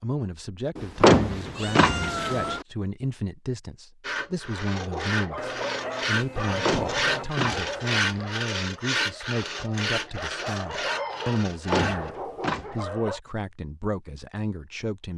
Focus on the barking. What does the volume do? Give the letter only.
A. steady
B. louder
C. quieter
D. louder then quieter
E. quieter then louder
E.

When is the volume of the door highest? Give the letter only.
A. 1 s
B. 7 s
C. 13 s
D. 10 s
A.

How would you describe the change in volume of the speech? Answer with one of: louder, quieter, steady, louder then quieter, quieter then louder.
steady.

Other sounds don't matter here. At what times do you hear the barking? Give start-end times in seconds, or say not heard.
4.7-13.2.